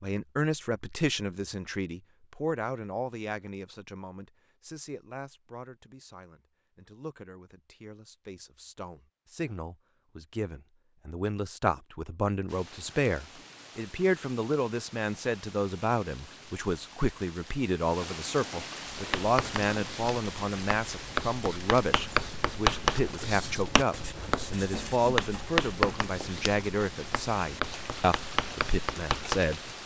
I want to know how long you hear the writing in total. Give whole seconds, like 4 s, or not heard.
11 s.